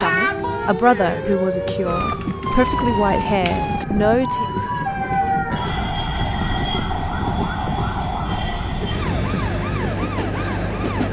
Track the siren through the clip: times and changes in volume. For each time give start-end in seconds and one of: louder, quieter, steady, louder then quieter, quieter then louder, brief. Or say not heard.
0.0-11.0 steady.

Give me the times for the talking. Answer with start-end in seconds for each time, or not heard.
0.0-4.5.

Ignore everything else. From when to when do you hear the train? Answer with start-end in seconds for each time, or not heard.
0.0-11.0.